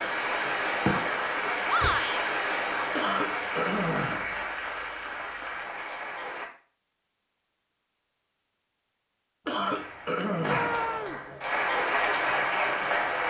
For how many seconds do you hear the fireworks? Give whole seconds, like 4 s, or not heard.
2 s.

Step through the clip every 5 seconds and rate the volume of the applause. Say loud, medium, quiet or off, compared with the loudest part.
loud, medium, loud.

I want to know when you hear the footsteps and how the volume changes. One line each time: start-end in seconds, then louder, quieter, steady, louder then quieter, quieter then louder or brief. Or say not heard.
not heard.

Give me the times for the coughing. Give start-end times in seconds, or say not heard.
2.9-4.5, 9.4-10.9.